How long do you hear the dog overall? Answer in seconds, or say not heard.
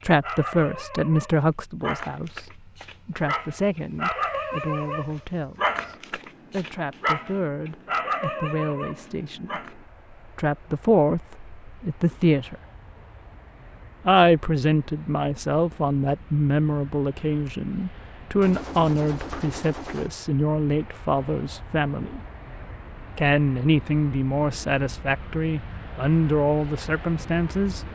10 s.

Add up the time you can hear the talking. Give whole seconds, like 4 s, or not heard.
25 s.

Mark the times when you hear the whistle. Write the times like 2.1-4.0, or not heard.
not heard.